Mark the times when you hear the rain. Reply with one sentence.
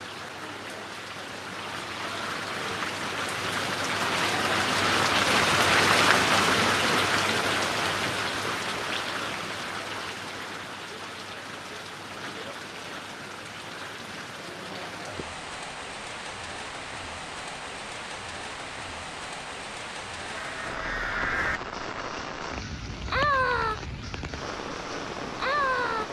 The rain can be heard from 0.0 to 26.0 s.